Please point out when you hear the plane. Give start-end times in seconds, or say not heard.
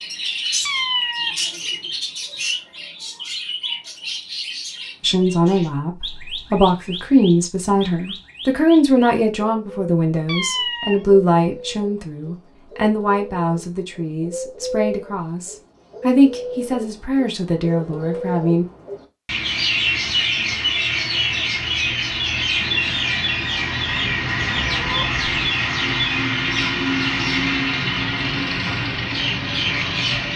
not heard.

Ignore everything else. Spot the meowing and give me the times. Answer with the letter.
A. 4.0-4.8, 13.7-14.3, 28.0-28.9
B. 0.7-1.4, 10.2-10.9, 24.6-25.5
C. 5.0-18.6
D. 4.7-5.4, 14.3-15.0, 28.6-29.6
B.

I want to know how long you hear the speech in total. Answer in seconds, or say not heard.
14 s.